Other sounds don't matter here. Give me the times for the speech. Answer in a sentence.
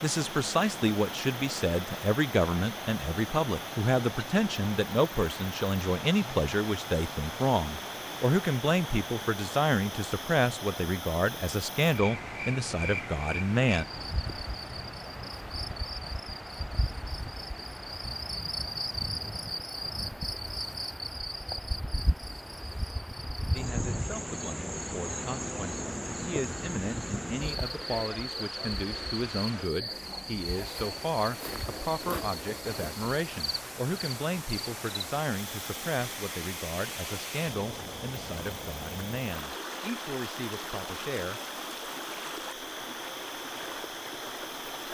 You can hear the speech from 0.0 to 13.8 s and from 23.5 to 41.4 s.